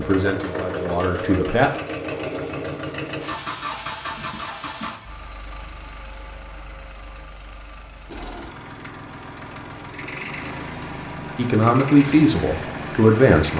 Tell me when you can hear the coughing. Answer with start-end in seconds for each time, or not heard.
4.2-5.0.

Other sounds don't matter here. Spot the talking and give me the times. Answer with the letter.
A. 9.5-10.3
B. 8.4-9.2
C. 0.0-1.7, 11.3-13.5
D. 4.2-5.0
C.